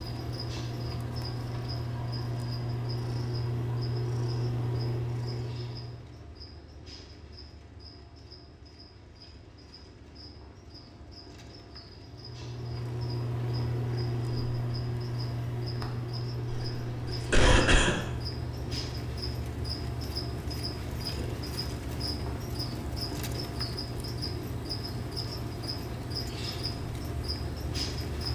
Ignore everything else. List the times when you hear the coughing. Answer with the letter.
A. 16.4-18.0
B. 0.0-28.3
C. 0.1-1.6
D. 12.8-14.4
A.